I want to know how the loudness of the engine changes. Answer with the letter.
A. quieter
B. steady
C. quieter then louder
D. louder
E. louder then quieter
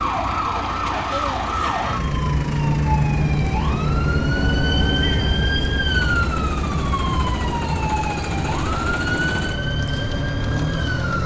D.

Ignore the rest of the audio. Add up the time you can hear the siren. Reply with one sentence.
The siren can be heard for 11 seconds in total.